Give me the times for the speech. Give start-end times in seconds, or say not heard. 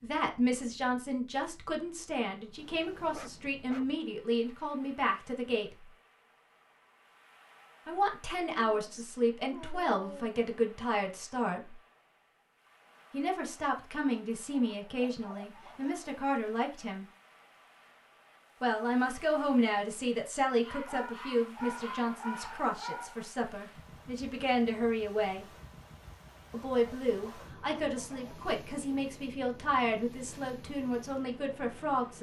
0.0-5.7, 7.8-11.8, 13.1-17.1, 18.6-25.4, 26.5-32.1.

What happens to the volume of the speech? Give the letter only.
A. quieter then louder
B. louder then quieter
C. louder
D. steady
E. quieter
D.